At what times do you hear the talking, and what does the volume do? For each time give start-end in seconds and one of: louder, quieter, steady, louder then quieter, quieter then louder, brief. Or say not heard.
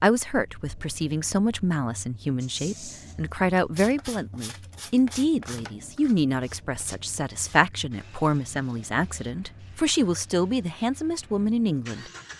0.0-12.1 steady.